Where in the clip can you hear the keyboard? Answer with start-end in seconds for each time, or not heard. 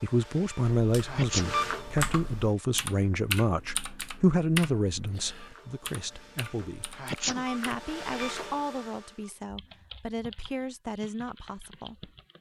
0.8-8.6, 9.4-12.3.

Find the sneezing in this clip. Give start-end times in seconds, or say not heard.
1.0-1.6, 6.9-7.5.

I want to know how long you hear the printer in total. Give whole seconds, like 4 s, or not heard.
7 s.